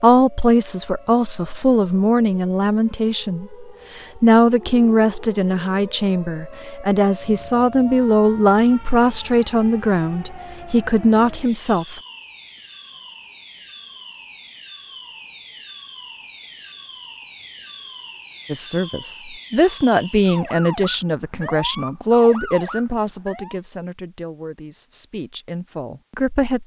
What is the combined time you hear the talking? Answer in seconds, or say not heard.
20 s.